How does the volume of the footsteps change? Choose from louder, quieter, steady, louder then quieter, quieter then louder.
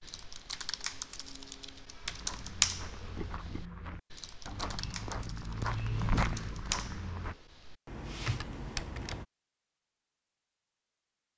louder.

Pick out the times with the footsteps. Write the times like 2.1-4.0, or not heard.
2.0-7.3.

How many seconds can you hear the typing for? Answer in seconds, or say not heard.
9 s.